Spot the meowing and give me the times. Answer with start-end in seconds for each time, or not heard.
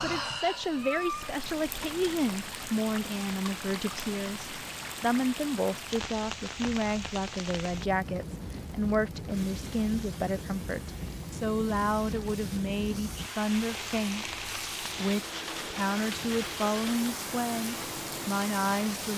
0.7-1.4.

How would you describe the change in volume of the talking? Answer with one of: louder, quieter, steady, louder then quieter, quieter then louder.
steady.